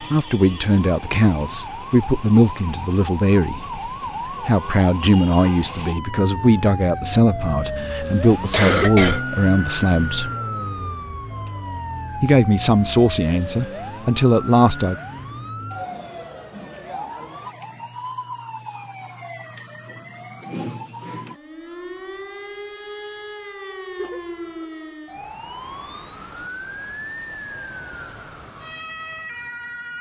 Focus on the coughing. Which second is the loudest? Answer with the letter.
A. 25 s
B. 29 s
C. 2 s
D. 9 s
D.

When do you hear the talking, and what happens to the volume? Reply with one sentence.
You can hear the talking from 0.1 to 10.3 s, at a steady volume; and briefly from 12.2 to 14.9 s.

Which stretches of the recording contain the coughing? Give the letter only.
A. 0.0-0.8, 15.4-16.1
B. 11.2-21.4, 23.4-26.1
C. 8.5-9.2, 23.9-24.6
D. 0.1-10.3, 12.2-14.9
C.